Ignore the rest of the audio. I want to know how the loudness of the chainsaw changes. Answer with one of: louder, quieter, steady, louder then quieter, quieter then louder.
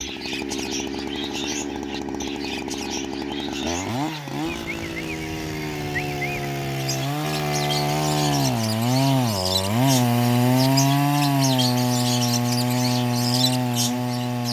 louder.